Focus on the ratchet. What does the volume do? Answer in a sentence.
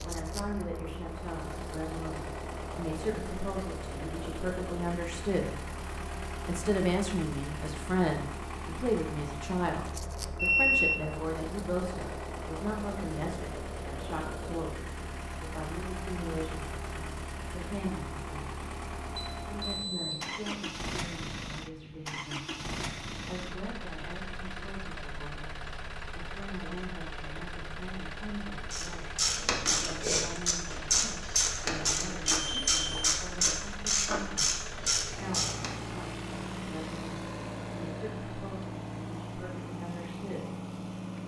The volume of the ratchet stays about the same.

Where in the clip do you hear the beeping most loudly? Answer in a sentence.
The volume of the beeping peaks at 11 seconds.